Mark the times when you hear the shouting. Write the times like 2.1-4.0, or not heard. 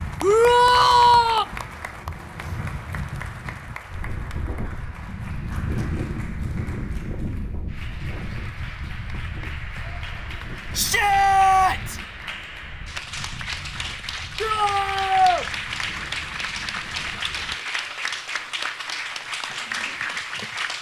0.2-1.4, 10.8-12.0, 14.4-15.4.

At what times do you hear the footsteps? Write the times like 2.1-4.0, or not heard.
not heard.